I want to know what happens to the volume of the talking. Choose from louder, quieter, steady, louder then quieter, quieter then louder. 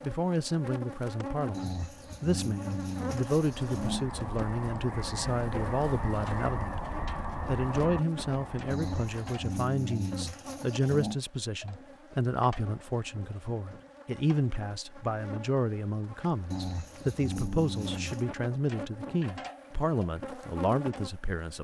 steady.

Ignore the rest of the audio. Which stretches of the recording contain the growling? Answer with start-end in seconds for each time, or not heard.
1.5-4.0, 8.7-11.2, 16.5-18.2.